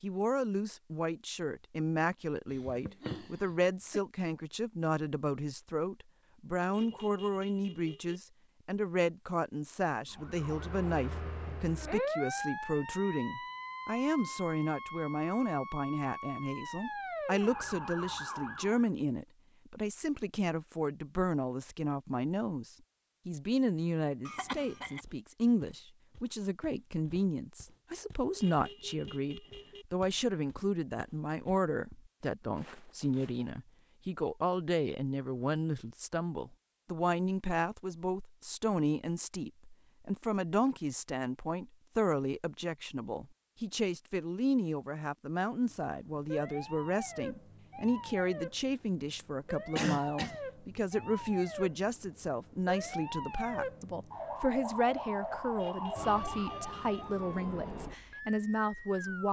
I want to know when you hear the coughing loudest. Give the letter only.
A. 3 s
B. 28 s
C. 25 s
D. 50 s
D.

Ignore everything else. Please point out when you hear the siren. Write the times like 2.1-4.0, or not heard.
10.1-18.9, 45.6-59.2.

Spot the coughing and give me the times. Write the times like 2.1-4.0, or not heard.
2.5-4.0, 24.2-25.1, 49.8-50.4.